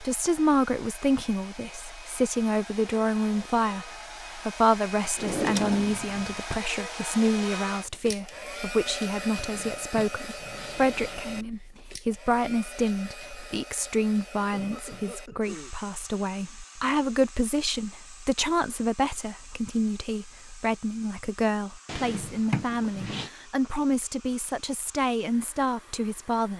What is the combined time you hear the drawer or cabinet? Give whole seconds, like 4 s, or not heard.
5 s.